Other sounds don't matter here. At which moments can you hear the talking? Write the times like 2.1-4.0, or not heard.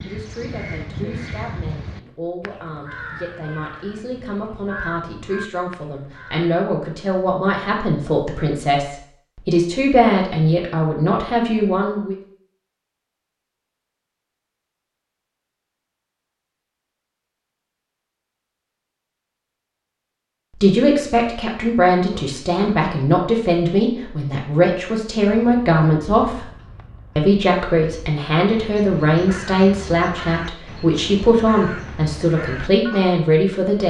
0.0-12.2, 20.6-26.4, 27.1-33.8.